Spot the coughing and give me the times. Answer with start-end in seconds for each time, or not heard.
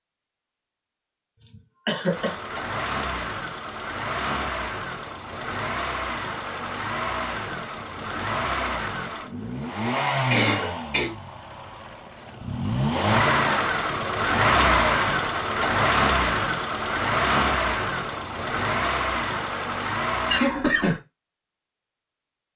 1.4-2.4, 10.3-11.1, 20.3-21.0.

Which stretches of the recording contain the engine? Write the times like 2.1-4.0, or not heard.
2.0-20.4.